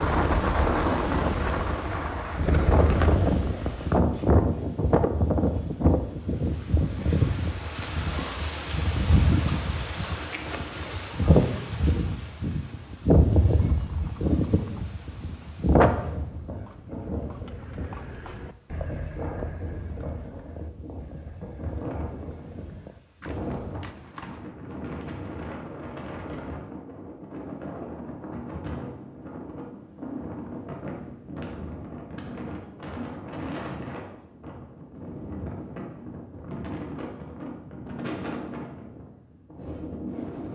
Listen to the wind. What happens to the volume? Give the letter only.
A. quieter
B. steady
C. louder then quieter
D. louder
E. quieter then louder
A.